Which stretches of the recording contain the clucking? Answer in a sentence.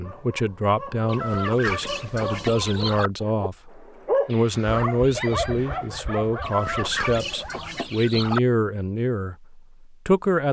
You can hear the clucking from 1.1 to 3.1 s and from 6.4 to 8.4 s.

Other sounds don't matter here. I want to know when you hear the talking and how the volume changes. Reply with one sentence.
You can hear the talking from 0.0 to 10.4 s, at a steady volume.